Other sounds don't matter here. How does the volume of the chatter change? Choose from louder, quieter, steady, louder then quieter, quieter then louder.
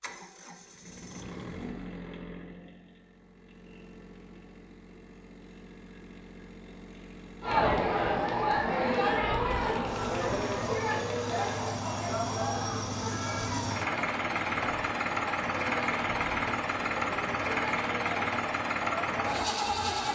quieter.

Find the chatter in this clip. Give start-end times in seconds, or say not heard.
7.4-20.0.